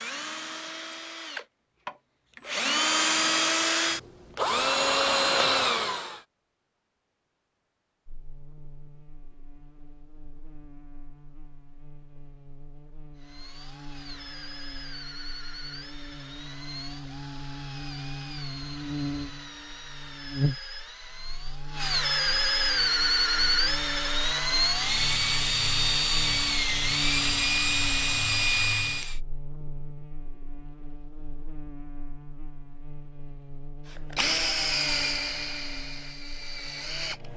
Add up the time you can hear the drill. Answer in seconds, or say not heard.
26 s.